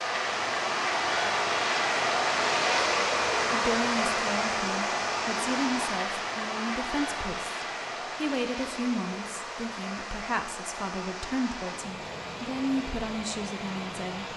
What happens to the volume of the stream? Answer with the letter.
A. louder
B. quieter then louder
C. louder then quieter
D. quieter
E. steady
D.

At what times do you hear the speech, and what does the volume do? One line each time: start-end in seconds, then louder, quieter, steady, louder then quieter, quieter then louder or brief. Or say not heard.
3.5-14.3 steady.